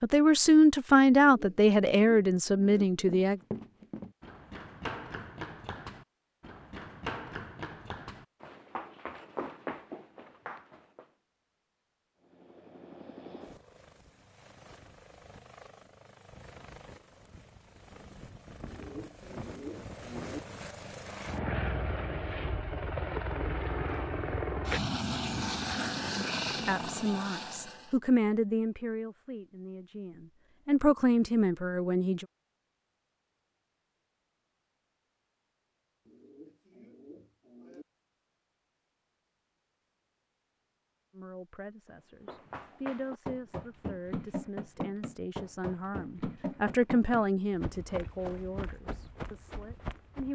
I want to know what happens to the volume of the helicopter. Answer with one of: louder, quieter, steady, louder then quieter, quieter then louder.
louder.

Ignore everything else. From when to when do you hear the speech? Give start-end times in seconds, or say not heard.
0.0-3.4, 26.6-32.2, 41.1-50.3.